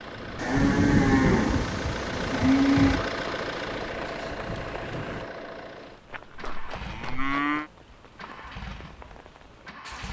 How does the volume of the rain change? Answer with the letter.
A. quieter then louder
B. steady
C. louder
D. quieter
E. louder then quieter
D.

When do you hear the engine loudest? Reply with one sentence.
The loudest moment of the engine is at 3 seconds.